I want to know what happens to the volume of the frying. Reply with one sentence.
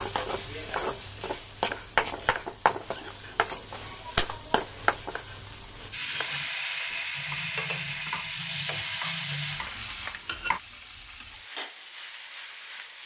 The volume of the frying goes down.